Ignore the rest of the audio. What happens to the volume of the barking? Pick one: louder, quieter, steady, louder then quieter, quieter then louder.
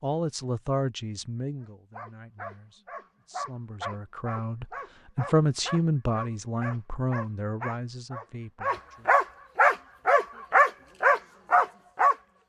louder.